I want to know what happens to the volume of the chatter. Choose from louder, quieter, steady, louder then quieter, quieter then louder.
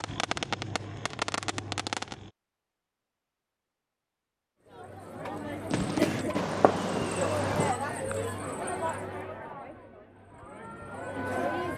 quieter.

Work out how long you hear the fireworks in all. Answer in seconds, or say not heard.
4 s.